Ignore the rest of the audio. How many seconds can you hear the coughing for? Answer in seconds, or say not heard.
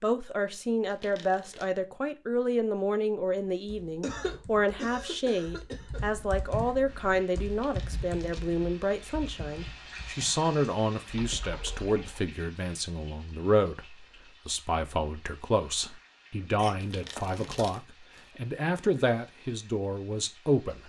3 s.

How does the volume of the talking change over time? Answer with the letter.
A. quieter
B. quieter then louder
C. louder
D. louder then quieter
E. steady
E.